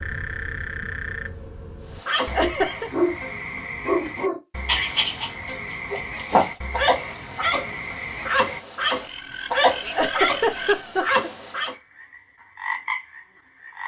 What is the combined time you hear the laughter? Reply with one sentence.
The laughter can be heard for 2 seconds in total.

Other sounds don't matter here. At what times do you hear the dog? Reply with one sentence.
The dog can be heard from 1.9 to 11.8 s.